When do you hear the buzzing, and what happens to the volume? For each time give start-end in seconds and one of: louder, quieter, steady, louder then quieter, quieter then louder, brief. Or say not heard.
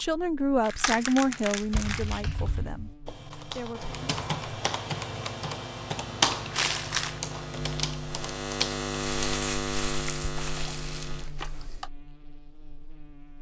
0.0-13.3 louder then quieter.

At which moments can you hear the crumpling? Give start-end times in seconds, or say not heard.
0.6-2.2, 6.5-7.2, 9.2-11.2.